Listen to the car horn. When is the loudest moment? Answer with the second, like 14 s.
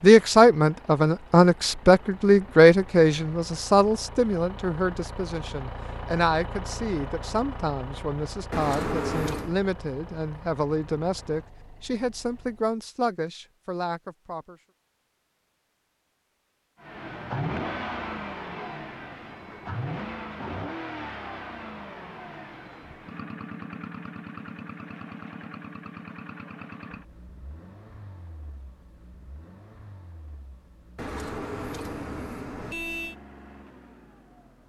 9 s.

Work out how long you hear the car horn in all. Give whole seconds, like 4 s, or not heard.
3 s.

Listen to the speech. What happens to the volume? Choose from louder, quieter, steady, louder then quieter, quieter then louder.
quieter.